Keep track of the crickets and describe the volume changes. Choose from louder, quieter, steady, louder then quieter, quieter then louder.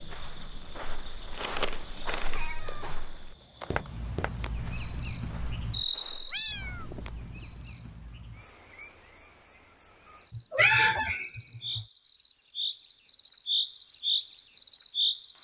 quieter then louder.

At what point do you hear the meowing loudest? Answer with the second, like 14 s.
11 s.